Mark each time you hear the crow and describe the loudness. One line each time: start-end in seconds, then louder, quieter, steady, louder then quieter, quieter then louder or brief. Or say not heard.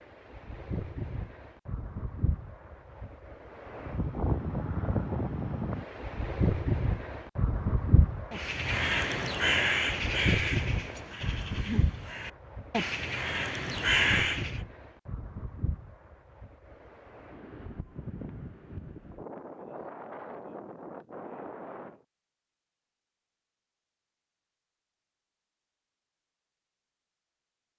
8.3-14.6 quieter then louder.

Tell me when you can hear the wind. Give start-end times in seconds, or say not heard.
0.0-22.0.